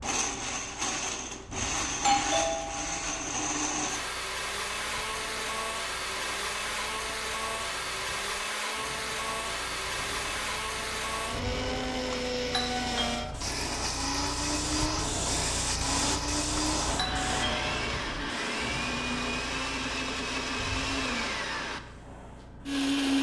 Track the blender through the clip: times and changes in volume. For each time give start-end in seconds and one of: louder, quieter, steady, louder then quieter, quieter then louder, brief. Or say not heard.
0.0-23.1 steady.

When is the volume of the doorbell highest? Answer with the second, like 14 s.
2 s.